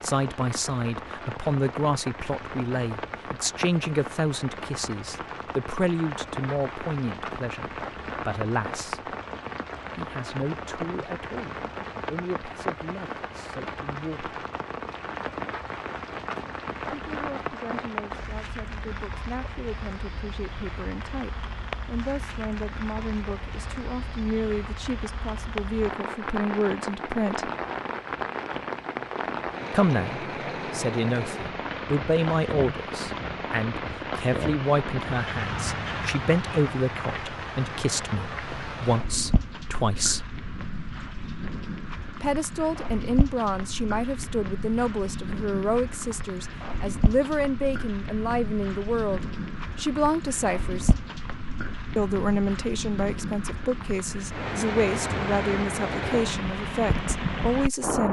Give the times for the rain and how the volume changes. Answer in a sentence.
The rain can be heard from 0.0 to 58.0 s, at a steady volume.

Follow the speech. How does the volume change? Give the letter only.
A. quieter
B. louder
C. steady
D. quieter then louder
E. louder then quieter
D.